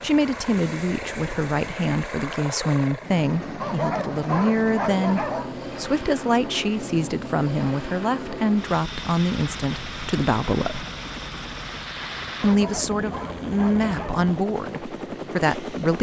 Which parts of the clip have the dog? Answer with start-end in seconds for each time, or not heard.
3.5-5.5, 12.4-14.2.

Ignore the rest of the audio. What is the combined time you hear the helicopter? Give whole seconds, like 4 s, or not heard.
16 s.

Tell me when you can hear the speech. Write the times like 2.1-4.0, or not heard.
0.0-10.8, 12.4-15.9.